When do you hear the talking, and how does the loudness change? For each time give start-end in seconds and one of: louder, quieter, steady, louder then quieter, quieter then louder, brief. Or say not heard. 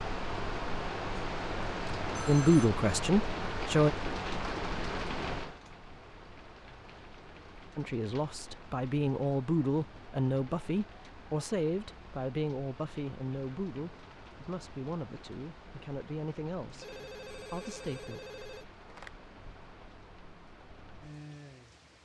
2.2-3.9 brief
7.8-16.9 quieter
17.4-18.2 brief.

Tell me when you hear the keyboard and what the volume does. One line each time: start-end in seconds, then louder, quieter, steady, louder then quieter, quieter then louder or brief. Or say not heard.
not heard.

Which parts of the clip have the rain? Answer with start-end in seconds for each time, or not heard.
0.0-22.0.